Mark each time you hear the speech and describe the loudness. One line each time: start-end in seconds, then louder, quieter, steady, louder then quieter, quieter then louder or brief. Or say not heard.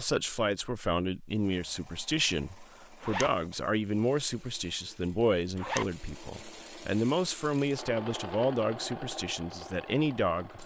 0.0-10.6 steady.